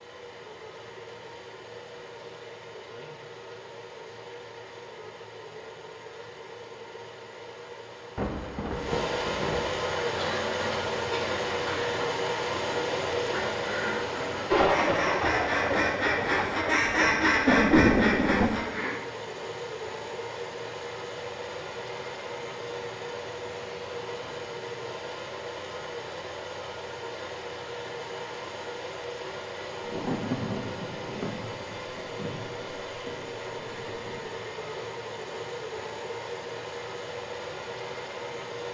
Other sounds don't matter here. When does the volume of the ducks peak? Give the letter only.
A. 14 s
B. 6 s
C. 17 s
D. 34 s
C.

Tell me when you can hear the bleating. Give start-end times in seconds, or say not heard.
not heard.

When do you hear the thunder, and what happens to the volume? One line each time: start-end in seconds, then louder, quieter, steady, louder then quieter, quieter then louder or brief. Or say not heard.
8.2-9.7 brief
14.5-18.5 quieter then louder
29.8-34.2 quieter.